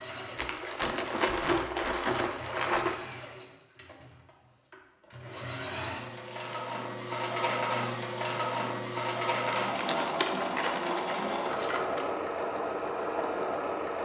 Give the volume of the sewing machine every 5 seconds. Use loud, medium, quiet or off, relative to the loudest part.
quiet, loud, loud.